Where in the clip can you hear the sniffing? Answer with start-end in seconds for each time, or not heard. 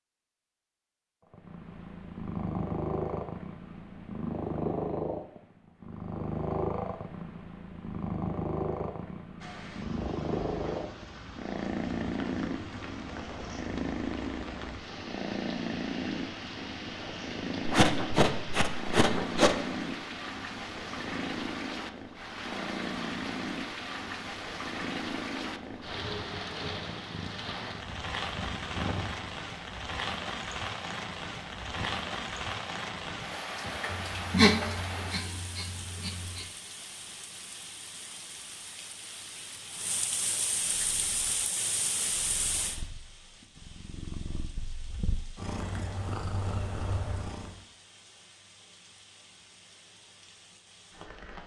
17.6-19.6, 33.9-36.5.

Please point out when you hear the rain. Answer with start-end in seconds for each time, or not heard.
9.4-51.4.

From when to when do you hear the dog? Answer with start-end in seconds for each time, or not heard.
not heard.